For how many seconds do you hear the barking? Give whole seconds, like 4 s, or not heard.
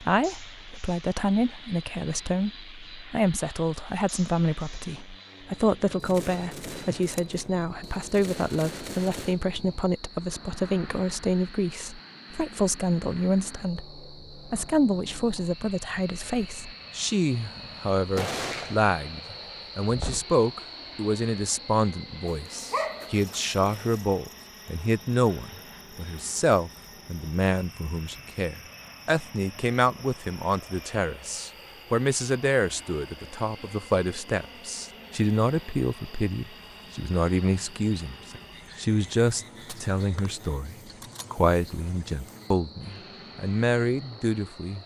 2 s.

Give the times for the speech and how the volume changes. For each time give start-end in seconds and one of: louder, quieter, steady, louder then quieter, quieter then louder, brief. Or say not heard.
0.0-44.8 steady.